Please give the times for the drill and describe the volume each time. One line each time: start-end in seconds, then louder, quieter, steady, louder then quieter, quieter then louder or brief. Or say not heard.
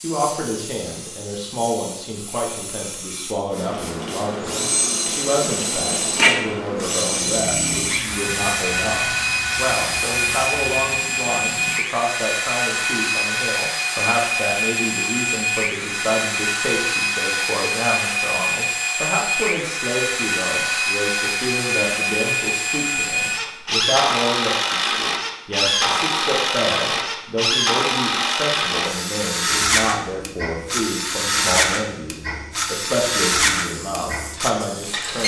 4.4-35.2 steady.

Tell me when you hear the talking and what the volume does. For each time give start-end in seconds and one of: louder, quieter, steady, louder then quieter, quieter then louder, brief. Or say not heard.
0.0-35.2 steady.